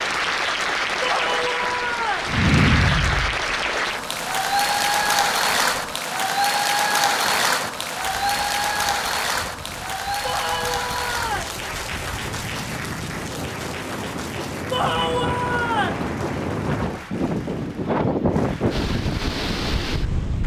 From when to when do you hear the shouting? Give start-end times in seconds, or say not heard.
1.0-2.4, 10.2-11.6, 14.7-16.1.